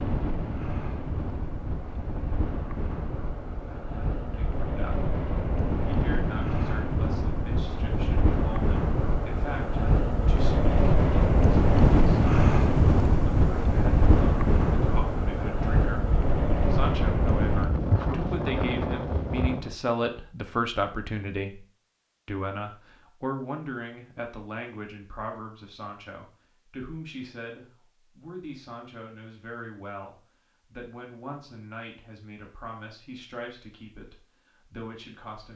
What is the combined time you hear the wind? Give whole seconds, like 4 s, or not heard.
20 s.